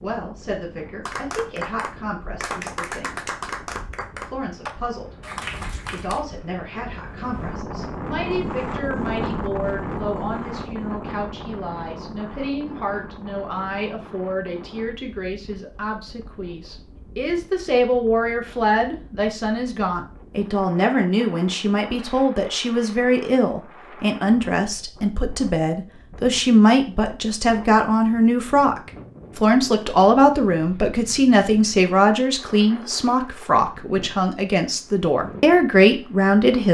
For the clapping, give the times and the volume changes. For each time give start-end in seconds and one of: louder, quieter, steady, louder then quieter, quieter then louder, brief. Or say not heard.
1.1-6.2 steady.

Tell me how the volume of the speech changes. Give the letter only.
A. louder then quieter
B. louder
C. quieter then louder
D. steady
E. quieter
B.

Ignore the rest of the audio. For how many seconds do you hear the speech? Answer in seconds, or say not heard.
36 s.